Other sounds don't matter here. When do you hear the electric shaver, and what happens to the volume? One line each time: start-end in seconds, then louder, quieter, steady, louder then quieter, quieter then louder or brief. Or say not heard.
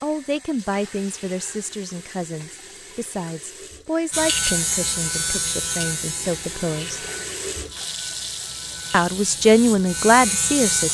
4.1-10.8 quieter then louder.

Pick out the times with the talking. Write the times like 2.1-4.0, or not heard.
0.0-7.0, 8.9-10.8.